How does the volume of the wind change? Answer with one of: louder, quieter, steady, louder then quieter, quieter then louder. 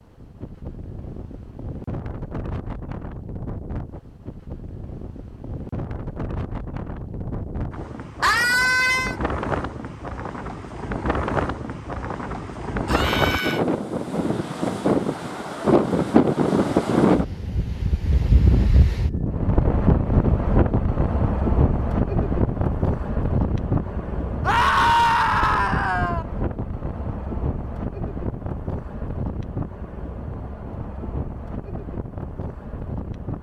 louder then quieter.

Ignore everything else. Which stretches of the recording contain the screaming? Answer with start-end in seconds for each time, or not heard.
8.2-9.2, 12.8-13.6, 24.4-26.2.